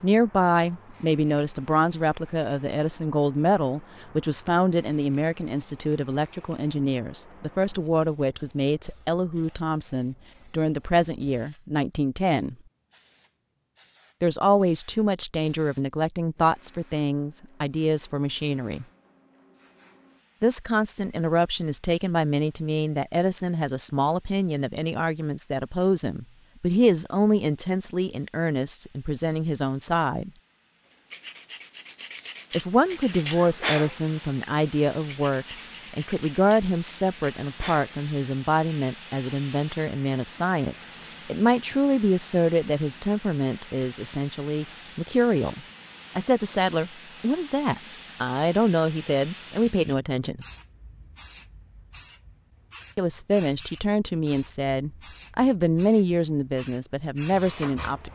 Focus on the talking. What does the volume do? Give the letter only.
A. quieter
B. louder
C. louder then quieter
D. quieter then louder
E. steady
E.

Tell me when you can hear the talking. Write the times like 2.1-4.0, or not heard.
0.0-12.6, 14.2-18.9, 20.4-30.3, 32.5-50.5, 53.0-58.1.